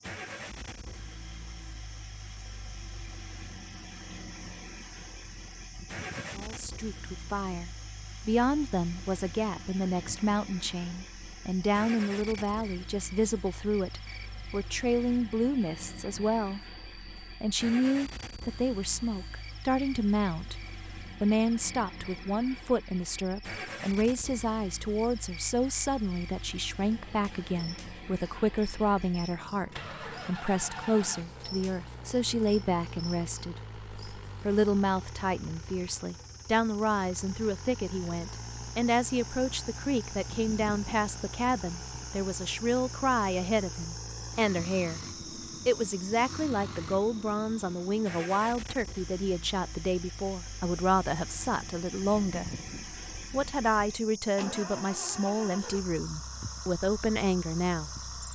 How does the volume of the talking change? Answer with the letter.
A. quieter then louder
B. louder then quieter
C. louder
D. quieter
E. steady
E.